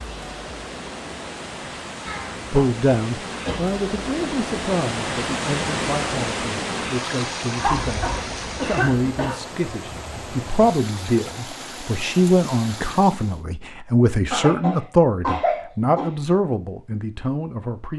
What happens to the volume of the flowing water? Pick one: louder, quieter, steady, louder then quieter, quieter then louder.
louder then quieter.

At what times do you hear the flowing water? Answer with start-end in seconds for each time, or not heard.
0.0-13.4.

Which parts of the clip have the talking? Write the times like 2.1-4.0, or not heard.
2.5-17.9.